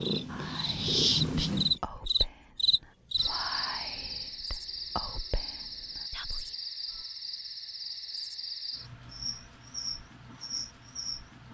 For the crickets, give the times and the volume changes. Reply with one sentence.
The crickets can be heard from 0.0 to 11.5 s, getting quieter.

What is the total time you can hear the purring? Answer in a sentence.
You can hear the purring for 2 seconds altogether.